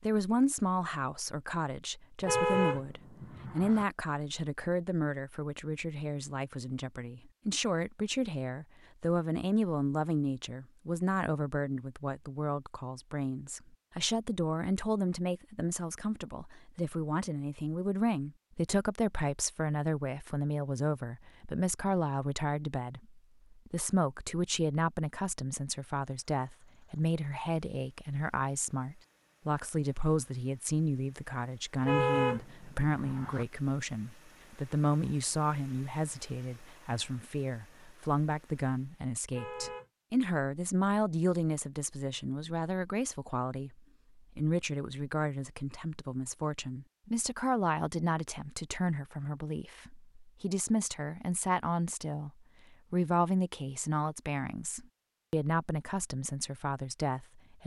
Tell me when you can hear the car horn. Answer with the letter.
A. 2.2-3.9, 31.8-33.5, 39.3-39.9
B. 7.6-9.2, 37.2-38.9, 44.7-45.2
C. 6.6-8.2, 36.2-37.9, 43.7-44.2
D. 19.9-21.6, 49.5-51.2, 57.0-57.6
A.